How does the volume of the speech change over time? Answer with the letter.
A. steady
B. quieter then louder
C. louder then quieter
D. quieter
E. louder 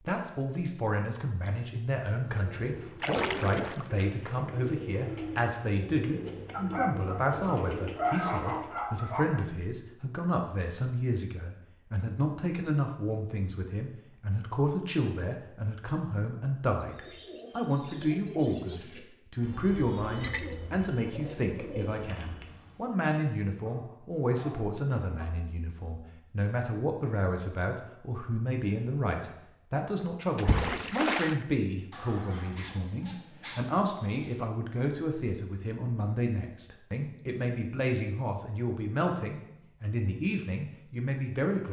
A.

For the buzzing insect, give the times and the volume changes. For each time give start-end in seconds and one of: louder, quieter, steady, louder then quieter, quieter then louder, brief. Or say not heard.
not heard.